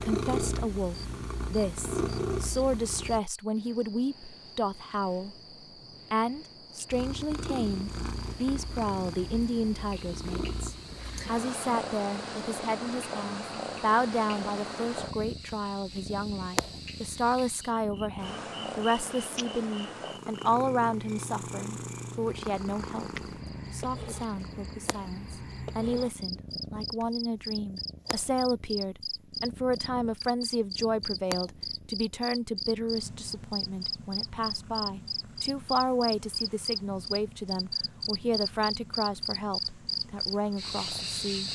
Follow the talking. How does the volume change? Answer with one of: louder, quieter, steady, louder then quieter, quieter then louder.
steady.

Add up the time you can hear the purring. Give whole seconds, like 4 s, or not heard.
38 s.